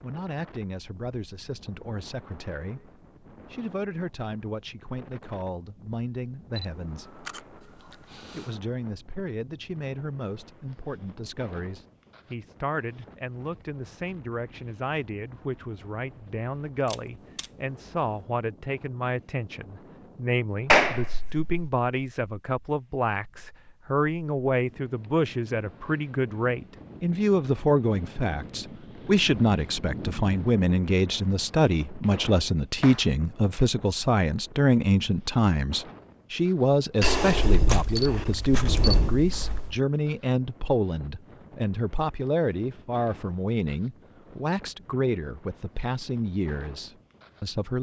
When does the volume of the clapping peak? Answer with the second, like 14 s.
21 s.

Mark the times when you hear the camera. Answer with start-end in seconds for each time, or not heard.
6.5-8.5, 16.9-17.4, 37.0-39.8.